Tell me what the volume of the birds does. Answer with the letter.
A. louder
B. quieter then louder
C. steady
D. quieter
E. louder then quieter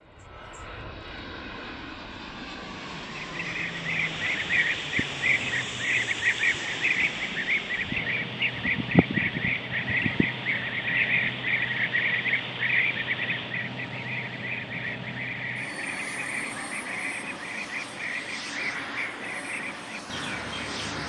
D.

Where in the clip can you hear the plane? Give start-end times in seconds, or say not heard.
0.0-21.0.